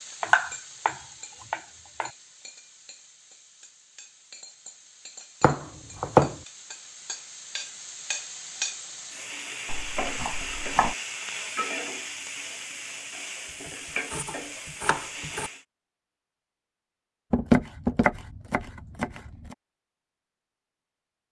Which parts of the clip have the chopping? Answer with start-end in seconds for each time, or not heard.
0.2-2.1, 5.4-6.4, 9.7-10.9, 14.1-15.5, 17.3-19.6.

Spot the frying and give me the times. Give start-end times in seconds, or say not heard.
0.0-15.6.